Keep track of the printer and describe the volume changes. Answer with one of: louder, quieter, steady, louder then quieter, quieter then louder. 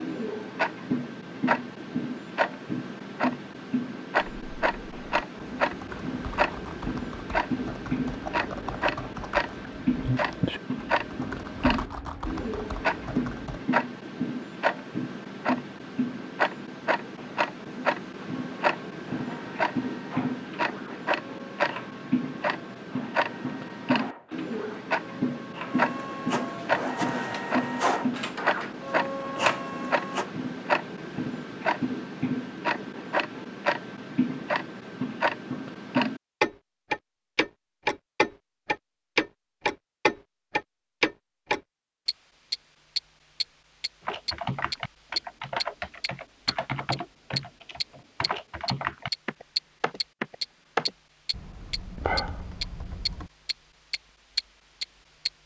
louder.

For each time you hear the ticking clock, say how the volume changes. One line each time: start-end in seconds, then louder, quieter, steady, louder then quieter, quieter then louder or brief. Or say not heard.
0.0-55.3 steady.